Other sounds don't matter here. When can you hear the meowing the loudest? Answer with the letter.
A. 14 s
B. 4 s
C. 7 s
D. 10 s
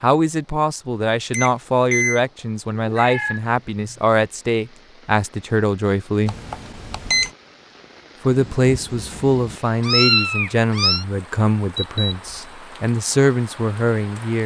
D.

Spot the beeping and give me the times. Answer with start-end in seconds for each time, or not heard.
1.3-2.2, 6.2-7.3, 11.8-12.6.